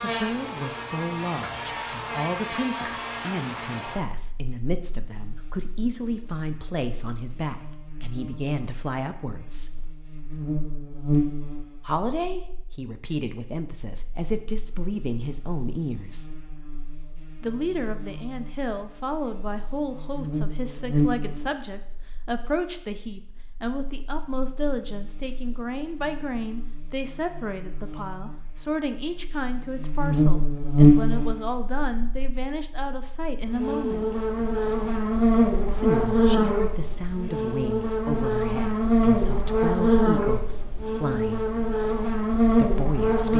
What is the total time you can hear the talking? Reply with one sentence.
The talking can be heard for 37 seconds in total.